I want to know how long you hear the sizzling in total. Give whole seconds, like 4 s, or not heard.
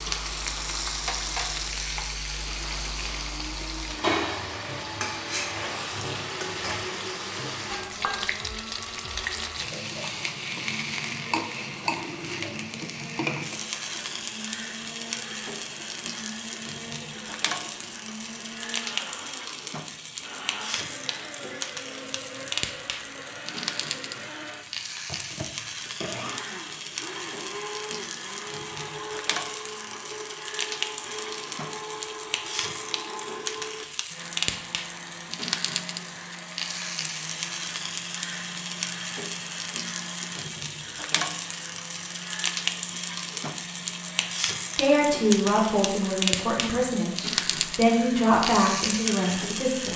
50 s.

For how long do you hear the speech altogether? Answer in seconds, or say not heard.
5 s.